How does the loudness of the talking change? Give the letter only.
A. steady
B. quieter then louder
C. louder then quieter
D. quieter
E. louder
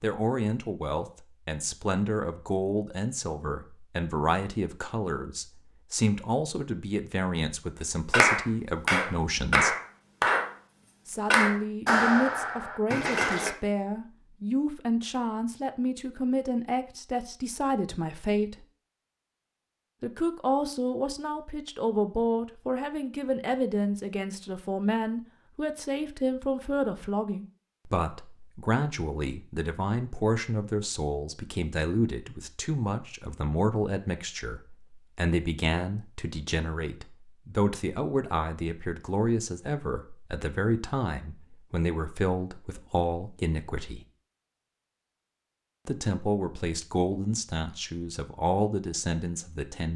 A.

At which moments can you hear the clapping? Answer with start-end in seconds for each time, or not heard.
8.1-10.5, 11.3-13.5.